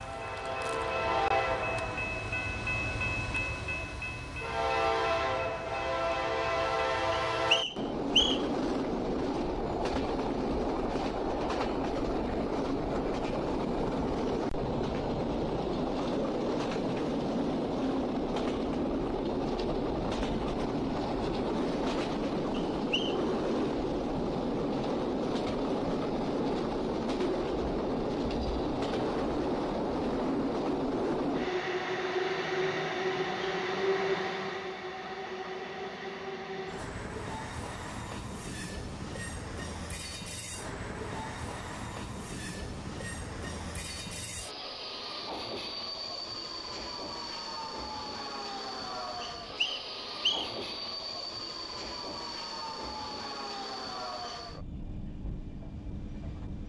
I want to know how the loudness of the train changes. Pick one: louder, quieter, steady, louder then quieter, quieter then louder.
quieter.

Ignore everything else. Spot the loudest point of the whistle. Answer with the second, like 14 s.
8 s.